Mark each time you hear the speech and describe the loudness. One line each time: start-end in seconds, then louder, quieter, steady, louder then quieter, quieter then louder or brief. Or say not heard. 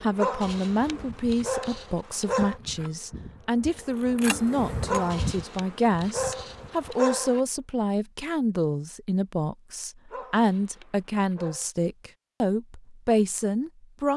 0.0-14.1 steady.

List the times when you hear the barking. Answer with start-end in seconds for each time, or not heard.
0.1-2.6, 4.8-7.4, 10.1-11.7.